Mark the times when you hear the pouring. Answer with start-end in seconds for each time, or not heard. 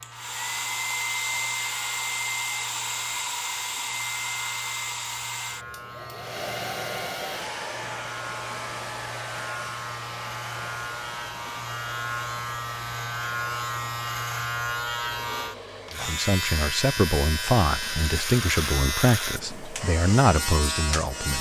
not heard.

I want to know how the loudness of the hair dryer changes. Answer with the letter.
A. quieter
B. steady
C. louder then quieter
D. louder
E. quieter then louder
A.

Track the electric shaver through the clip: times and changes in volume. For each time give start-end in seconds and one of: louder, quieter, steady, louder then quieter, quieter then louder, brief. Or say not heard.
0.0-21.3 louder.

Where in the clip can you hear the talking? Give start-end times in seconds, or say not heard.
15.9-21.3.